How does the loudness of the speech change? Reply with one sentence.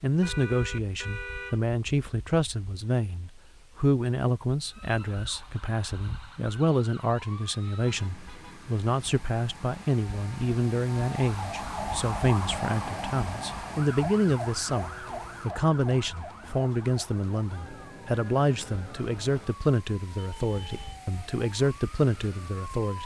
The volume of the speech stays about the same.